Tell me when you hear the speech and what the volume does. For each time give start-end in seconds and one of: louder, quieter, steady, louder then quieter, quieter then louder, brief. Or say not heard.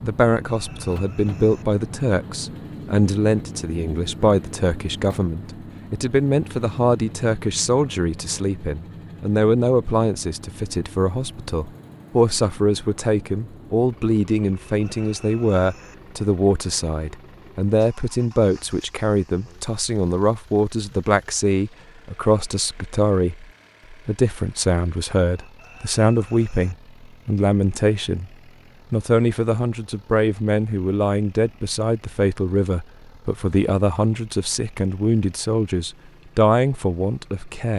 0.0-37.7 steady.